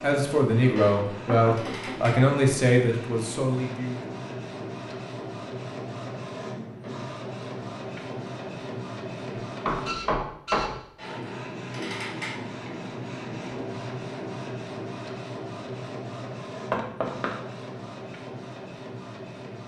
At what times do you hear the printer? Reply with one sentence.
The printer can be heard from 0.0 to 19.6 s.